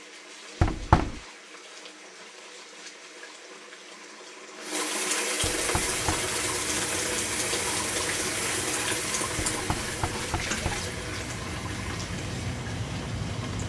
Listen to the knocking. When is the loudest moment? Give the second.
1 s.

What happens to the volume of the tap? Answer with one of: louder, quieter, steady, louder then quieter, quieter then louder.
louder then quieter.